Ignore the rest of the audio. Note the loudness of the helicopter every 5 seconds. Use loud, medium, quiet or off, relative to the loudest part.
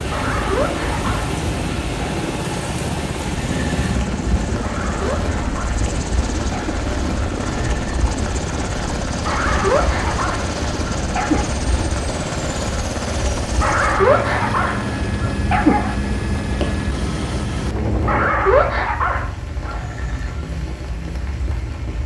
loud, loud, loud, loud, off.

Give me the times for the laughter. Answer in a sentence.
You can hear the laughter from 3.4 to 4.0 s, from 7.7 to 8.1 s and from 19.8 to 20.4 s.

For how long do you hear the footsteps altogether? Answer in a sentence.
You can't hear the footsteps here.